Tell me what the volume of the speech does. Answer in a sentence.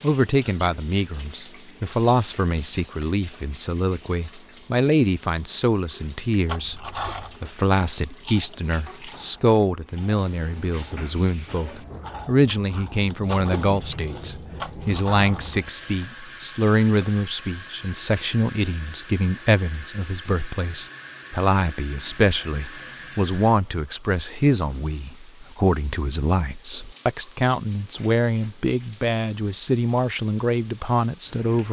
The volume of the speech stays about the same.